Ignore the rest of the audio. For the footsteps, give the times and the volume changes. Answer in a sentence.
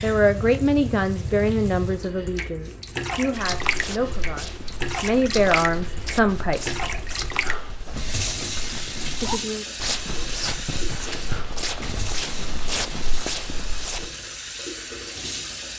You can hear the footsteps from 3.3 to 14.1 s, getting louder.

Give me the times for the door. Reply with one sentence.
You can't hear the door here.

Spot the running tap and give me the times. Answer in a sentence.
You can hear the running tap from 0.0 to 15.7 s.